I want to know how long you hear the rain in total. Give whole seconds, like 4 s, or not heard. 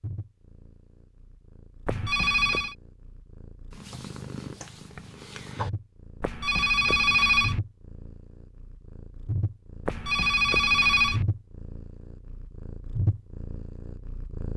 not heard.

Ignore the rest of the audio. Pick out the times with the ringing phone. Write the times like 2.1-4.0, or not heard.
1.9-2.8, 6.2-7.6, 9.8-11.2.